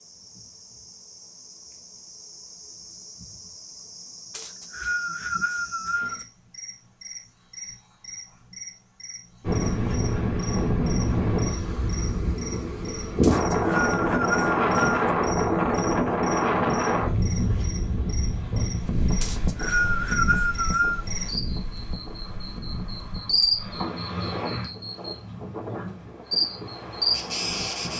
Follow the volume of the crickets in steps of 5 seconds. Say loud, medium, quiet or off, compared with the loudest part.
quiet, quiet, quiet, quiet, loud, loud.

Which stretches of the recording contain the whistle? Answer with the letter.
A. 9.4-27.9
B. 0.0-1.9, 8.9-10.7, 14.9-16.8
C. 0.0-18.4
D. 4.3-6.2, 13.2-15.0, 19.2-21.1
D.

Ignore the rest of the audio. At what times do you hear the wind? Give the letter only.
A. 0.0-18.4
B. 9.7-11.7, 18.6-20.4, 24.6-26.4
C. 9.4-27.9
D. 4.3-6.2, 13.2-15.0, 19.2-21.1
C.